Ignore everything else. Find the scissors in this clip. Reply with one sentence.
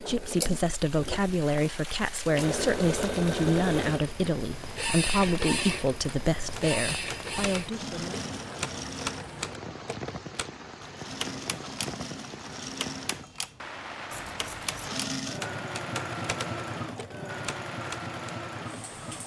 You can hear the scissors from 14.1 to 14.9 s.